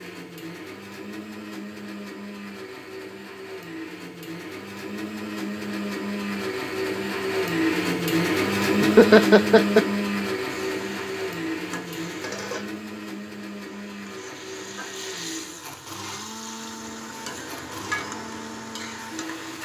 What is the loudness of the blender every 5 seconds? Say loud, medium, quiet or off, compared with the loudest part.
quiet, loud, medium, quiet.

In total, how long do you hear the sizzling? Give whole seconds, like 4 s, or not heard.
9 s.